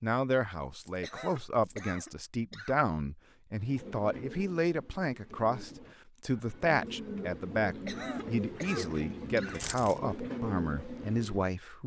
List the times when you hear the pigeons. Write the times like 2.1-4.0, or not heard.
3.5-11.5.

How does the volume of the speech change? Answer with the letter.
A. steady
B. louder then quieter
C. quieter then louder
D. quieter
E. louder
A.